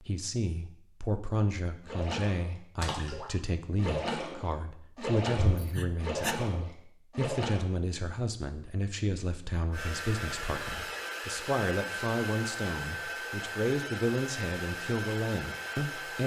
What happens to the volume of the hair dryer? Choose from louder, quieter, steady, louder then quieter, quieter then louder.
steady.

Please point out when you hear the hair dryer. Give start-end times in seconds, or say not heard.
9.7-16.2.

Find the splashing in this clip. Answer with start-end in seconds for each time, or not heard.
1.9-7.7.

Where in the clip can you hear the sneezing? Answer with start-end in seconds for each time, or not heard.
5.4-6.3.